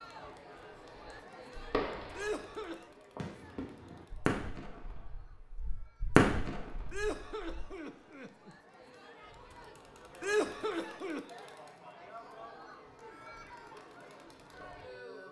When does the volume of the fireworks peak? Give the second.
6 s.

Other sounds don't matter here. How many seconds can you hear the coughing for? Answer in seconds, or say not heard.
3 s.